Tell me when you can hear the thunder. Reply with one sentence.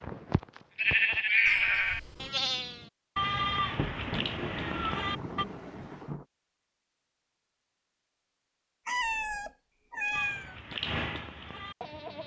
You can hear the thunder from 3.8 to 6.2 s.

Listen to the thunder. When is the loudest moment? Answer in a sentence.
The volume of the thunder peaks at 4 seconds.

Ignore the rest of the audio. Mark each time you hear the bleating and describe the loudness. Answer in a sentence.
You can hear the bleating from 0.0 to 5.5 s, getting quieter; and briefly from 10.1 to 12.2 s.